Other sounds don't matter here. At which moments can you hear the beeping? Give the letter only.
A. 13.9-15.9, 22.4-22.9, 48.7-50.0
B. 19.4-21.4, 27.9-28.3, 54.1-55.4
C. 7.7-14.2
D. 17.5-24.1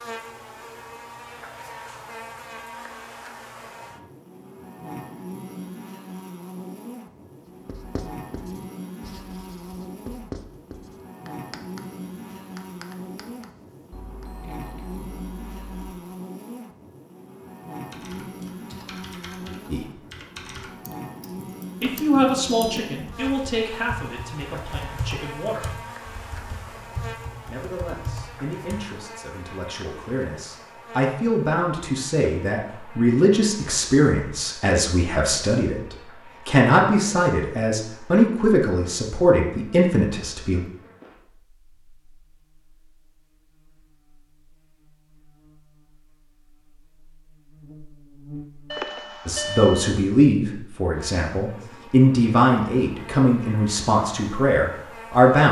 A.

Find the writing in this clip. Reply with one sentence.
You can hear the writing from 7.7 to 14.2 s.